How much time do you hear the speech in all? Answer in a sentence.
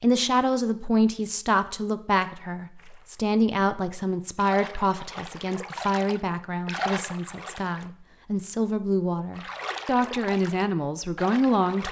You can hear the speech for 12 seconds altogether.